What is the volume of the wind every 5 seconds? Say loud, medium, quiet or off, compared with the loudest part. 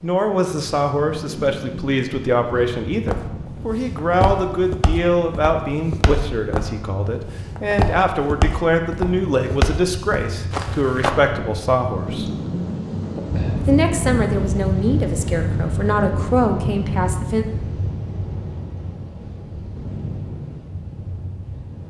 medium, medium, loud, loud, medium.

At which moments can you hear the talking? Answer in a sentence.
The talking can be heard from 0.0 to 12.3 s and from 13.6 to 17.4 s.